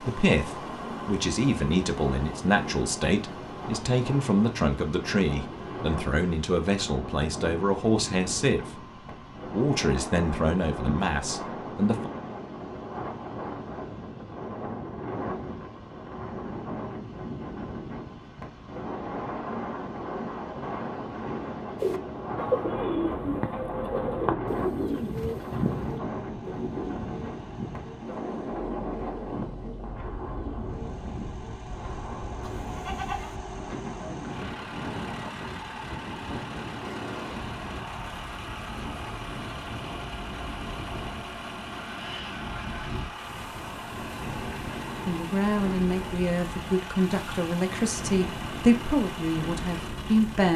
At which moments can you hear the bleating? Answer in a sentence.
You can hear the bleating from 32.4 to 33.4 s.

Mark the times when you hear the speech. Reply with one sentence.
You can hear the speech from 0.0 to 8.8 s, from 9.4 to 12.1 s and from 45.0 to 50.5 s.